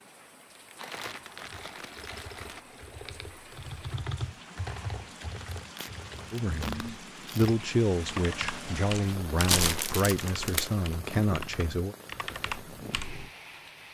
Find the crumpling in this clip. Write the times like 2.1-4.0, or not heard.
0.8-2.6, 5.4-7.5, 9.3-10.8.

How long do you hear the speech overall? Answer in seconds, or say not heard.
6 s.